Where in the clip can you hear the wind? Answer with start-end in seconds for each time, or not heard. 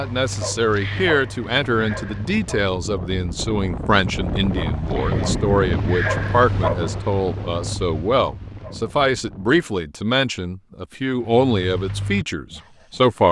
0.2-9.7.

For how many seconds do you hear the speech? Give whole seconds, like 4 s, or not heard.
13 s.